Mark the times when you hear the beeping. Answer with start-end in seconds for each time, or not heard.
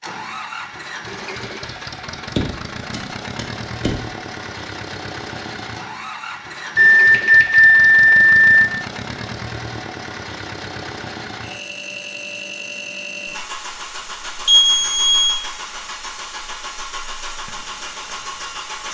2.4-3.9, 6.8-8.7, 14.4-15.4.